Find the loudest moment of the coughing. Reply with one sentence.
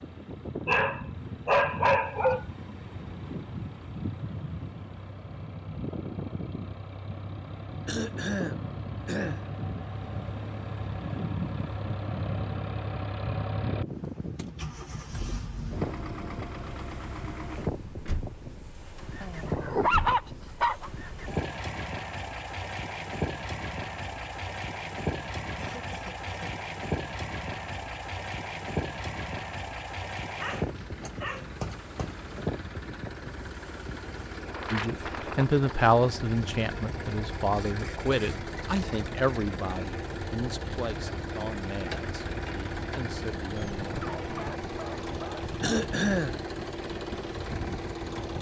The volume of the coughing peaks at 46 seconds.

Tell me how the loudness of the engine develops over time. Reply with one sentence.
The loudness of the engine goes up.